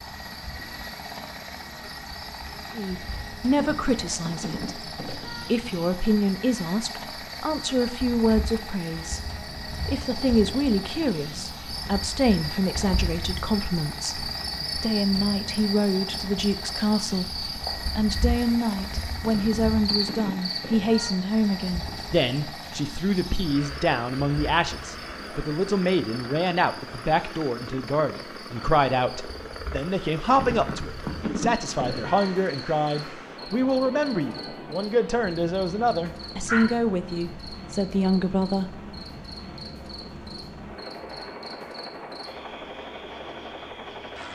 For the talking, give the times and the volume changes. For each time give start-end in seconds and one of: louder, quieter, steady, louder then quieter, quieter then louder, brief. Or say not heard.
2.8-38.8 steady.